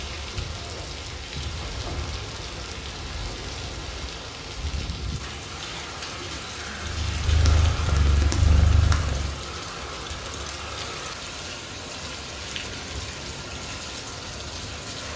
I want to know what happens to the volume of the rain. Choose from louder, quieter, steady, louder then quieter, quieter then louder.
steady.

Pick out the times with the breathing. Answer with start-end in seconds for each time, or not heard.
6.5-7.0.